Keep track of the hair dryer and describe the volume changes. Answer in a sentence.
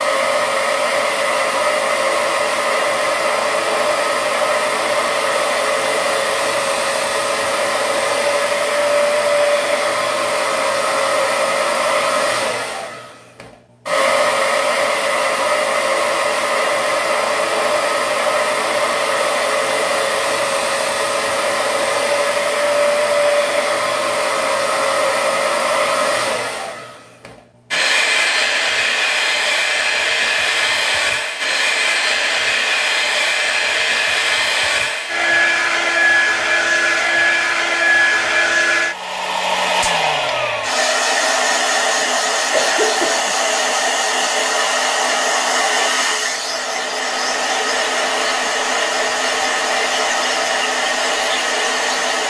The loudness of the hair dryer stays about the same.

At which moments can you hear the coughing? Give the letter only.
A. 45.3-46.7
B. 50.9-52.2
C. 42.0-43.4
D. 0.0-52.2
C.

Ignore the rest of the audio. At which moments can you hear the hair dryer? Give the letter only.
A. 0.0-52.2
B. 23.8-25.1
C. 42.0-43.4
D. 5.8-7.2
A.